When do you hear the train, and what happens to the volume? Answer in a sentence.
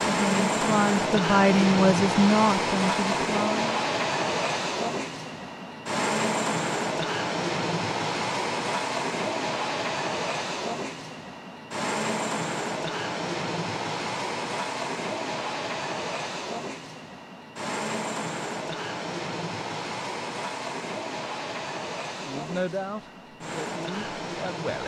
The train can be heard from 0.0 to 24.8 s, getting quieter.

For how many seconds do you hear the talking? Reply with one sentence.
The talking can be heard for 6 seconds in total.